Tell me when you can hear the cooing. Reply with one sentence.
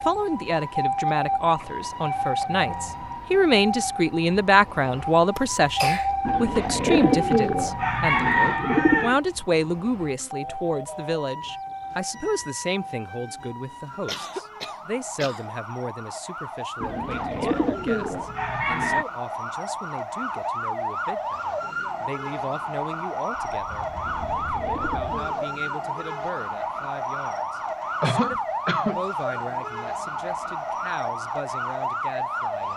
The cooing can be heard from 6.2 to 9.2 s, from 16.8 to 19.1 s and from 24.1 to 25.6 s.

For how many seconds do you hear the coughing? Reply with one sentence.
You can hear the coughing for 3 seconds altogether.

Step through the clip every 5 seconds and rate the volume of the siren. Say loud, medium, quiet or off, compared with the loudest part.
loud, loud, medium, medium, loud, loud, loud.